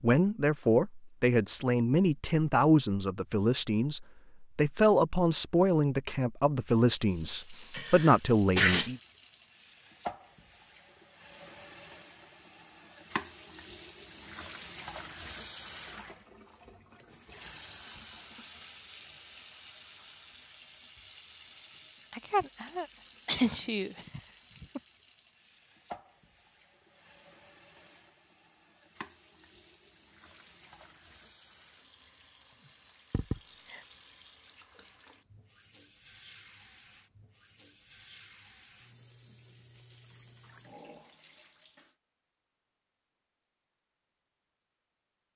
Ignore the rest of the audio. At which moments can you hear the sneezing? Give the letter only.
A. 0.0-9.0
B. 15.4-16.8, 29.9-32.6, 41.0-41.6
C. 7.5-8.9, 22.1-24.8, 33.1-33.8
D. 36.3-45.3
C.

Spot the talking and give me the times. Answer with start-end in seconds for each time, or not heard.
0.0-9.0.